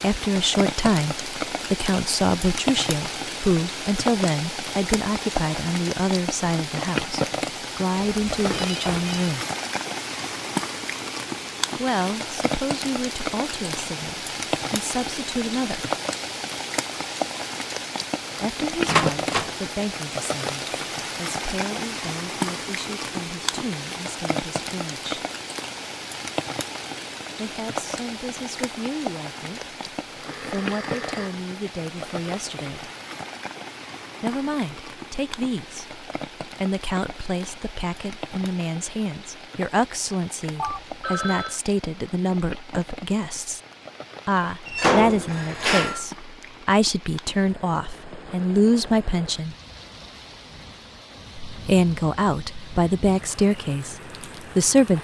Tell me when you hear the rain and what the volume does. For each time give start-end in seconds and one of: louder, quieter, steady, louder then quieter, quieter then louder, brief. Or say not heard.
0.0-55.0 quieter.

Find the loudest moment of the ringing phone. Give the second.
41 s.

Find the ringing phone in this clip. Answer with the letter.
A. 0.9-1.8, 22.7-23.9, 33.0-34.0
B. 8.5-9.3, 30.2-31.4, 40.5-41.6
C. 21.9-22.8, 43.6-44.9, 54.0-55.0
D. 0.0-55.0
B.